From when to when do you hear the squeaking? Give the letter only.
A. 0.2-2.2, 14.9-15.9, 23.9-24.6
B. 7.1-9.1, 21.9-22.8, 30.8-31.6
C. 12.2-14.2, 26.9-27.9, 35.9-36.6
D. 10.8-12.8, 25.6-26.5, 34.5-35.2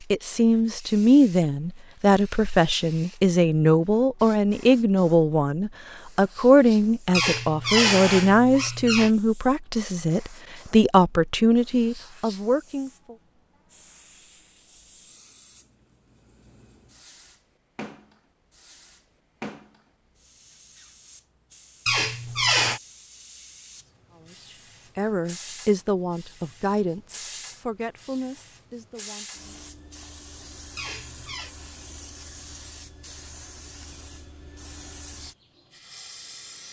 B.